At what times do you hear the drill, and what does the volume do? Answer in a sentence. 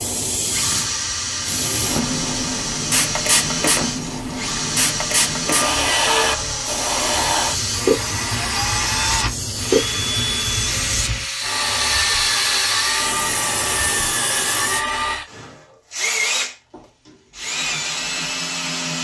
You can hear the drill from 0.2 to 18.9 s, at a steady volume.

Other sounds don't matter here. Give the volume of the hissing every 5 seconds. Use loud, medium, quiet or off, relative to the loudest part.
loud, loud, loud, off.